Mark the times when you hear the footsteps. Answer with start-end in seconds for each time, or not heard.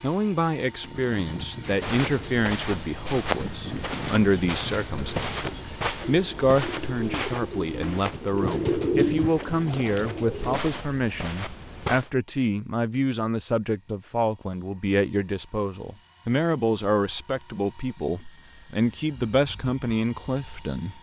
1.6-12.1.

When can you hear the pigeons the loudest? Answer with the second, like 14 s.
9 s.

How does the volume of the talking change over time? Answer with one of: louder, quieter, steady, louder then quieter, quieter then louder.
steady.